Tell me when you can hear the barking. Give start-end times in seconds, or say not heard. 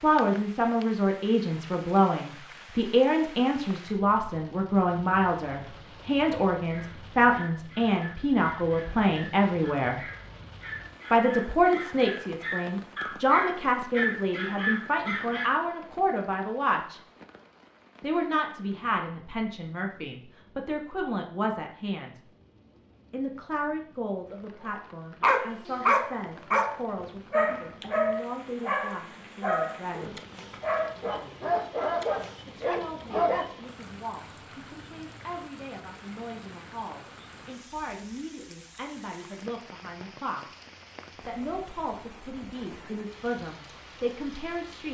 6.7-15.6, 25.2-33.5.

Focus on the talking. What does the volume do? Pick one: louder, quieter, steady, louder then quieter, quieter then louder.
quieter.